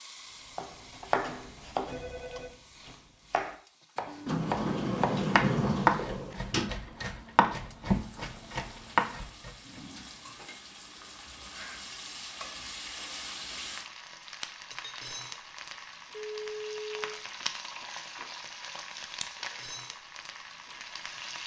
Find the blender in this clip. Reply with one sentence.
You can't hear the blender here.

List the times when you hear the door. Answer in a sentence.
The door can be heard from 4.2 to 6.8 s.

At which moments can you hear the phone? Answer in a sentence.
The phone can be heard from 1.9 to 2.5 s and from 16.1 to 17.1 s.